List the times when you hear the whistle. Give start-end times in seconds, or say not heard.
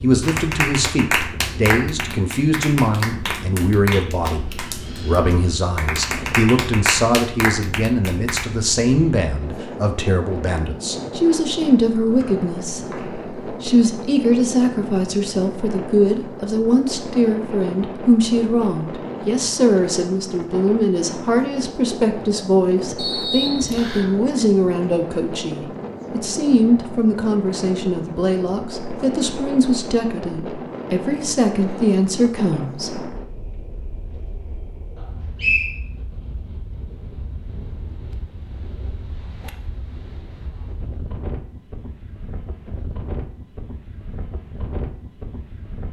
12.2-13.2, 22.9-24.1, 35.0-35.8.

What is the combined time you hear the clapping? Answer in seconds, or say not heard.
8 s.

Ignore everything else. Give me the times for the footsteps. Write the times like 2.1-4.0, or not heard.
not heard.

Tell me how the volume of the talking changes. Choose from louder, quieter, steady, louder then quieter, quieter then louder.
steady.